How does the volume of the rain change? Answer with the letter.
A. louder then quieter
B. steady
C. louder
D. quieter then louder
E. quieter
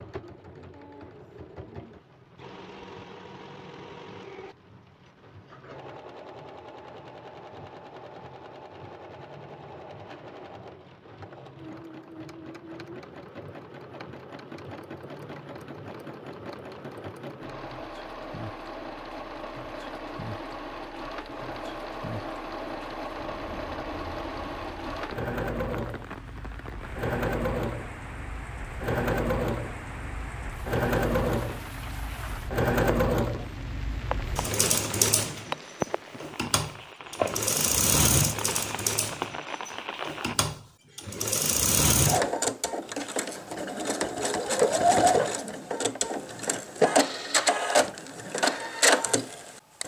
C.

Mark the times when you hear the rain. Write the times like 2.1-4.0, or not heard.
0.0-40.4.